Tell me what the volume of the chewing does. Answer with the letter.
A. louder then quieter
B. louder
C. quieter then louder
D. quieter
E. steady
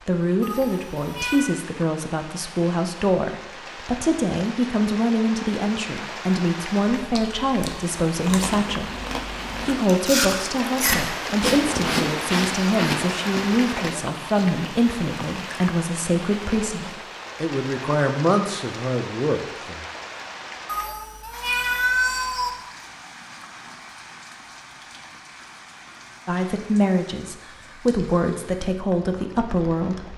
A.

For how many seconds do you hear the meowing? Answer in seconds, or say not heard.
3 s.